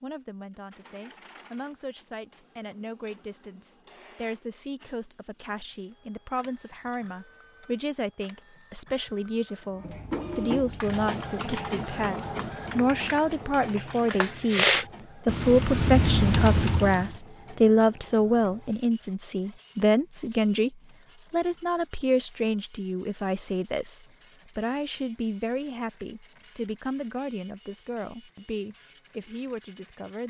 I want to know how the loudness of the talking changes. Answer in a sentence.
The volume of the talking goes up, then down.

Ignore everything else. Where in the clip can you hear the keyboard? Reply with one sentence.
The keyboard can be heard from 10.6 to 17.1 s.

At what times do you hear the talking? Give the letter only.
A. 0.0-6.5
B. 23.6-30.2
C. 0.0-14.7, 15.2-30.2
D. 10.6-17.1
C.